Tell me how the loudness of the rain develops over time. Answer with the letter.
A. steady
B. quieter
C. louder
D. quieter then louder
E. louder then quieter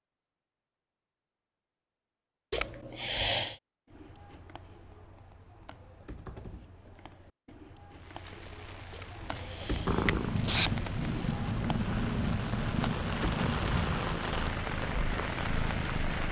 C.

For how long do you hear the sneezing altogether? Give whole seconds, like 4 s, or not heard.
3 s.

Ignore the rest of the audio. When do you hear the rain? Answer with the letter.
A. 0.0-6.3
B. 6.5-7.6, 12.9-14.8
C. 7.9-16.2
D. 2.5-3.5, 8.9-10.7
C.